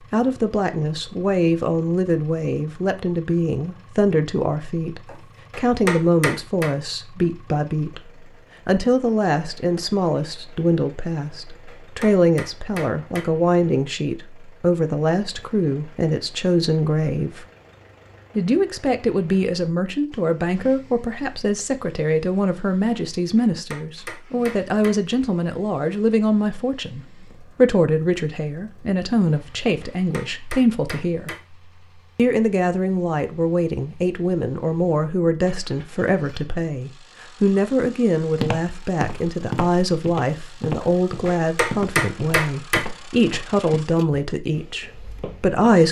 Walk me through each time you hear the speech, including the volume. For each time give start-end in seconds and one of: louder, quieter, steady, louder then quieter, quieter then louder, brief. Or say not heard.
0.1-17.4 steady
18.4-31.3 steady
32.1-45.8 steady.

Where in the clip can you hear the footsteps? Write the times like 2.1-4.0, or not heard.
38.2-45.6.